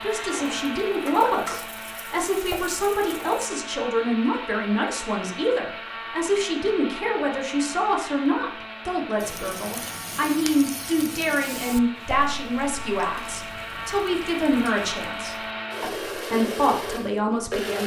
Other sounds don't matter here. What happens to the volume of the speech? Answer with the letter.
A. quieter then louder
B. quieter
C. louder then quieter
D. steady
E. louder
D.